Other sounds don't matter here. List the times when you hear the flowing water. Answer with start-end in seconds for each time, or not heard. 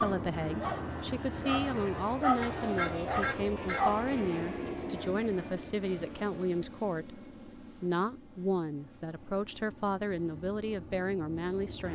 not heard.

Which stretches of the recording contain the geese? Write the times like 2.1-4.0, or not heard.
2.4-4.0.